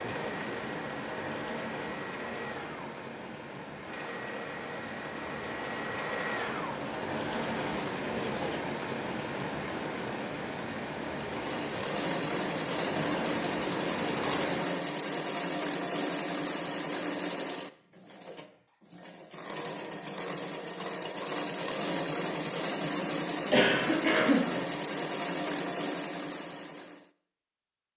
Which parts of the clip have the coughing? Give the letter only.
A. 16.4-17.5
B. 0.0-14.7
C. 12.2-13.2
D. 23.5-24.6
D.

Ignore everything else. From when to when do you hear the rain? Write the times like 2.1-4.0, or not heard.
0.0-14.7.